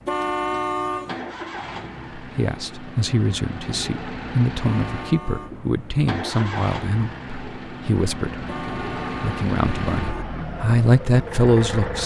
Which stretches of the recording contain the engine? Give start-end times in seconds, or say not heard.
0.0-12.0.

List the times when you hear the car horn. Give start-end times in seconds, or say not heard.
0.1-1.1, 4.6-5.5, 8.4-10.2.